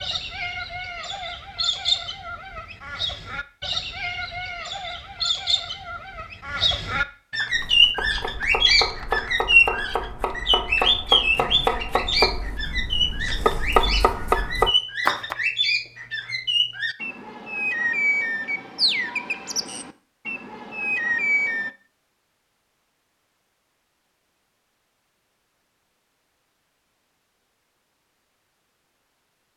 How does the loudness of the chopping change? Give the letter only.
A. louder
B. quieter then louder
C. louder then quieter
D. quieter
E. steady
A.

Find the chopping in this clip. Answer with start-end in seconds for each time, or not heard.
7.5-15.3.